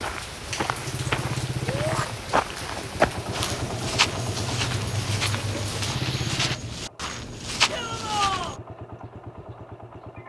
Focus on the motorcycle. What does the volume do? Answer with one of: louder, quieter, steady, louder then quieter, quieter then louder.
quieter.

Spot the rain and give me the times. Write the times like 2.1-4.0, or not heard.
0.0-6.5.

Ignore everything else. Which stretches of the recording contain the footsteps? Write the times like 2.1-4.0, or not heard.
0.0-8.6.